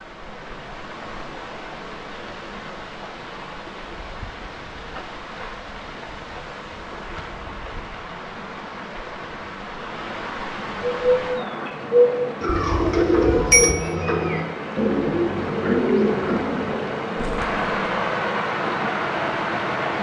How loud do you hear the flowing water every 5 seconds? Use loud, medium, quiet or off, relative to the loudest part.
medium, medium, medium, loud.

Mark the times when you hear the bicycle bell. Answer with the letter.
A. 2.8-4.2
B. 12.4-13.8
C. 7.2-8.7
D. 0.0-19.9
B.